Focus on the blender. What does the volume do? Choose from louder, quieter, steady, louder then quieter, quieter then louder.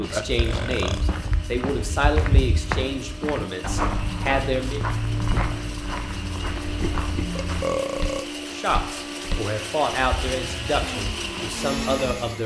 louder.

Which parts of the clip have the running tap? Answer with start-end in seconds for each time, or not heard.
not heard.